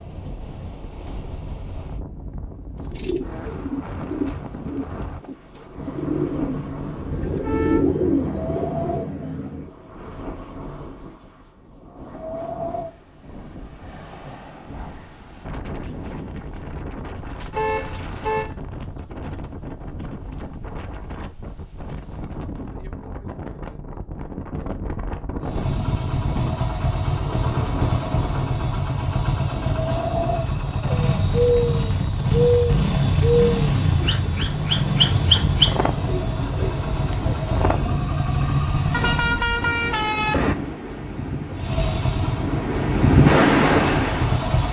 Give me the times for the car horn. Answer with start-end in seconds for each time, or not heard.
7.0-7.8, 17.5-18.4, 38.9-40.5.